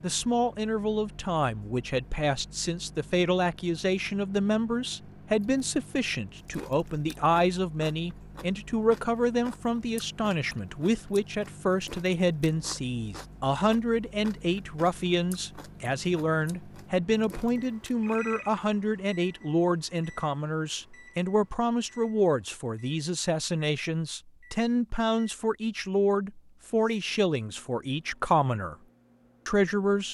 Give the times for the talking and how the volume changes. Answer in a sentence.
The talking can be heard from 0.0 to 28.8 s, at a steady volume; and briefly from 29.4 to 30.0 s.